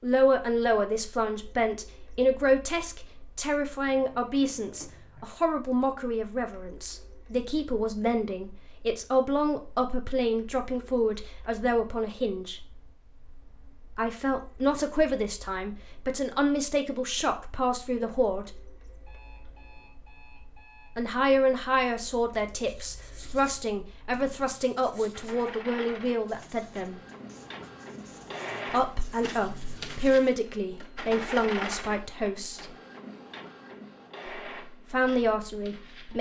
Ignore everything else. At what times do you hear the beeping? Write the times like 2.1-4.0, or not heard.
19.1-20.9.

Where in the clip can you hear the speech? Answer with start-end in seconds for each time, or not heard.
0.0-12.6, 13.9-18.7, 20.9-27.0, 28.7-32.6, 34.9-36.1.